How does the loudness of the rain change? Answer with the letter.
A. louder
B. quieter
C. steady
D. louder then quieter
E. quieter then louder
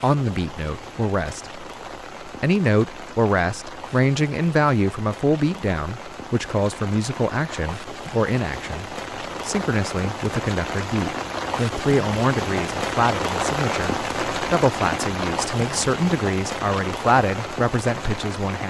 A.